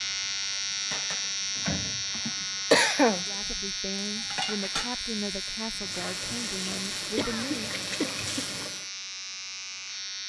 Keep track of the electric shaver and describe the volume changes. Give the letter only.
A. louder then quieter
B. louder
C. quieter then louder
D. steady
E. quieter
E.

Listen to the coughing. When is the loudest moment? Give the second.
3 s.